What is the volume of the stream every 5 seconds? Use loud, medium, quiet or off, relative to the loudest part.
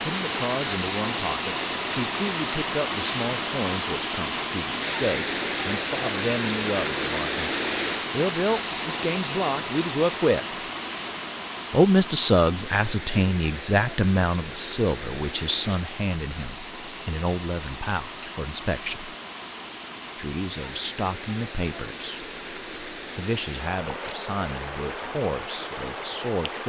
loud, loud, medium, medium, medium, medium.